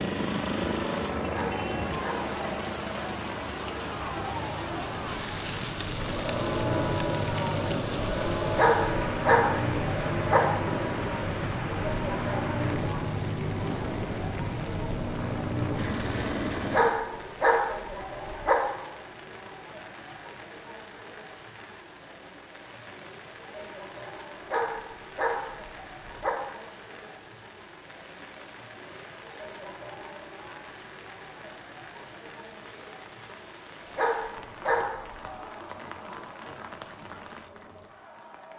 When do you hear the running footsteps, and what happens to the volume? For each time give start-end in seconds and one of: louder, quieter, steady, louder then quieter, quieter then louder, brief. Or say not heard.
not heard.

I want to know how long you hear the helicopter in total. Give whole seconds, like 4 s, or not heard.
17 s.